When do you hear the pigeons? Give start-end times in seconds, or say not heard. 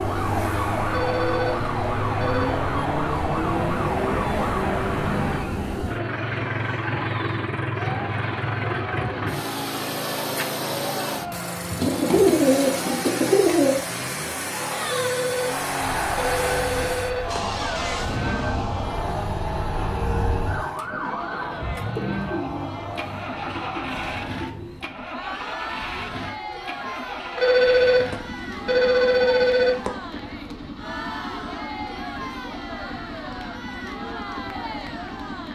11.8-13.7, 21.9-24.9.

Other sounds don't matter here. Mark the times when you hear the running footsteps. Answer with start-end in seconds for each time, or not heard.
not heard.